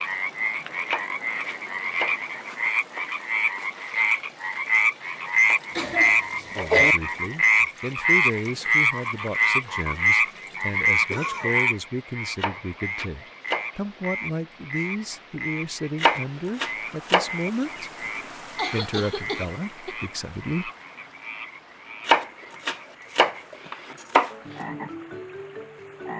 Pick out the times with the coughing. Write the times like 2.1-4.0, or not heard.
5.8-7.0, 11.1-11.6, 17.8-19.9.